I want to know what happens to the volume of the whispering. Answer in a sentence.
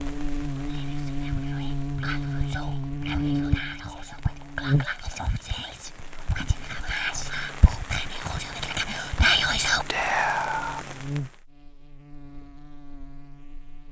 The loudness of the whispering goes up.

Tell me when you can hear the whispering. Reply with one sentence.
You can hear the whispering from 0.7 to 10.8 s.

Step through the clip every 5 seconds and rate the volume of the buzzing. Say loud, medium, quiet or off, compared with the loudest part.
loud, quiet, medium.